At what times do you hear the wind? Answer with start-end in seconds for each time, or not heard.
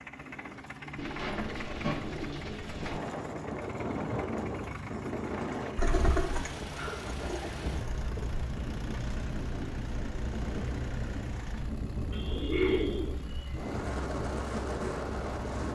2.7-15.7.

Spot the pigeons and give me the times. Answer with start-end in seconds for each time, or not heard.
0.9-3.0, 5.8-8.4, 12.1-13.7.